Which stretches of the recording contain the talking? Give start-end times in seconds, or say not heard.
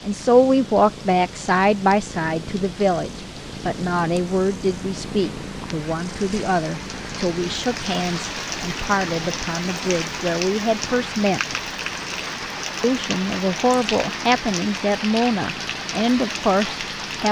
0.0-11.6, 12.8-17.2.